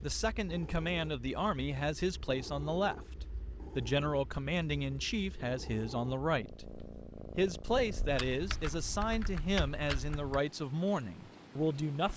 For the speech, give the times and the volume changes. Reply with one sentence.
The speech can be heard from 0.0 to 12.1 s, at a steady volume.